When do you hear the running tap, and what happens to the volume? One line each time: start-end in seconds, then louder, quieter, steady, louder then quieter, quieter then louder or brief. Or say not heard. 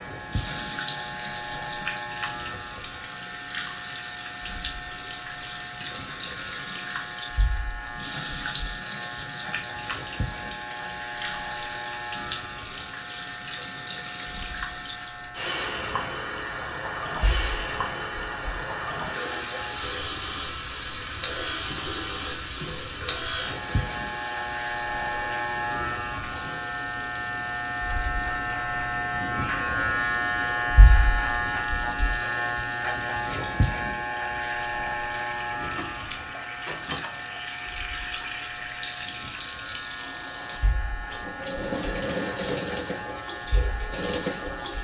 0.0-44.7 quieter then louder.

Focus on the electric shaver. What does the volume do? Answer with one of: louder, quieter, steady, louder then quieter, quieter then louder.
louder then quieter.